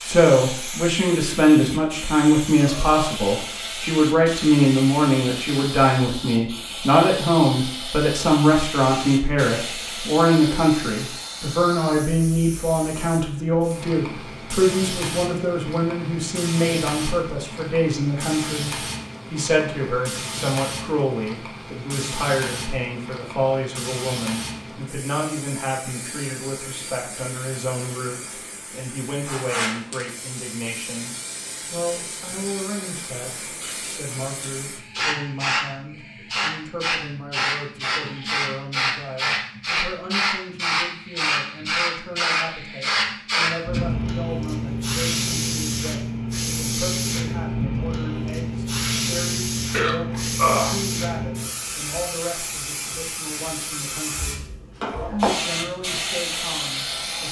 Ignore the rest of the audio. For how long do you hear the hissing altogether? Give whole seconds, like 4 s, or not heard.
57 s.